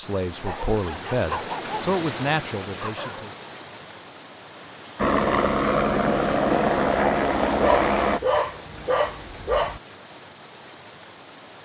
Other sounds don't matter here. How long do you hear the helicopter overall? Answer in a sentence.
The helicopter can be heard for 3 seconds in total.